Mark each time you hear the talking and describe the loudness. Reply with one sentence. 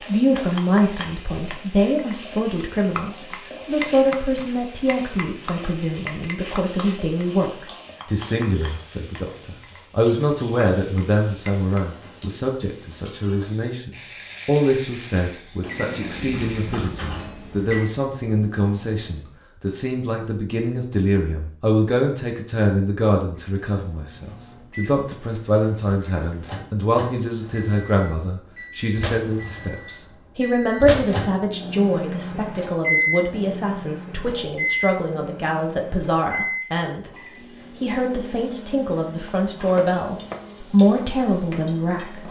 The talking can be heard from 0.1 to 37.1 s, at a steady volume; and from 37.8 to 42.2 s, getting louder then quieter.